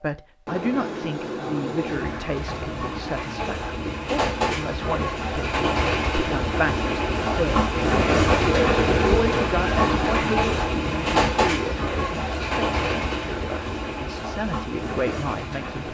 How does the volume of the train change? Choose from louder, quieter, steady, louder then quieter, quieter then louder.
louder then quieter.